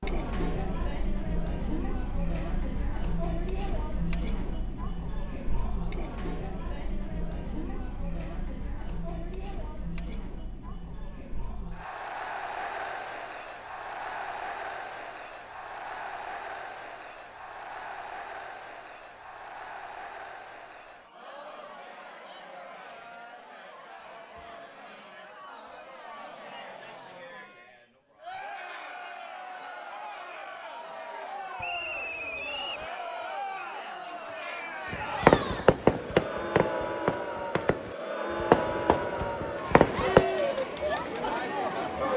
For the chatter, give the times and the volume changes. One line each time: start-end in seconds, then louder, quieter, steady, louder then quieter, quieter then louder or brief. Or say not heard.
0.0-42.1 quieter then louder.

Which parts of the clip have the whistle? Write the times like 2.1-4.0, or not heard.
31.6-32.9.